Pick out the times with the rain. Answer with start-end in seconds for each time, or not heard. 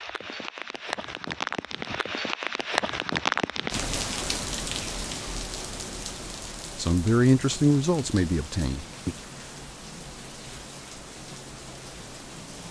0.0-12.6.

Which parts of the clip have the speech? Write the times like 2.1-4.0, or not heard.
6.8-9.2.